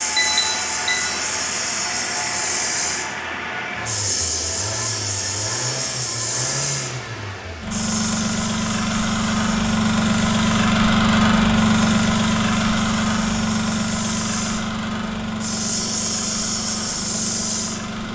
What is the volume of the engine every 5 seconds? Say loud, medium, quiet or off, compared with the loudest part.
medium, medium, loud, medium.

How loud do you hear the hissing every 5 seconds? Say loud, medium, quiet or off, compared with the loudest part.
loud, loud, medium, loud.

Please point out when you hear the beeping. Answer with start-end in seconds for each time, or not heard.
0.1-1.1.